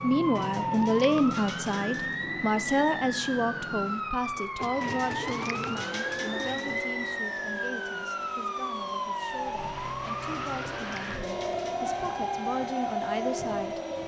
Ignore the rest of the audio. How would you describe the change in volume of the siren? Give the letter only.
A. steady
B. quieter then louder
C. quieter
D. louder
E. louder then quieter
A.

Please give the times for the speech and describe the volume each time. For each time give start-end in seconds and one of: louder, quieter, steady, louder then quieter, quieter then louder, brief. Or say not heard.
0.0-13.8 quieter then louder.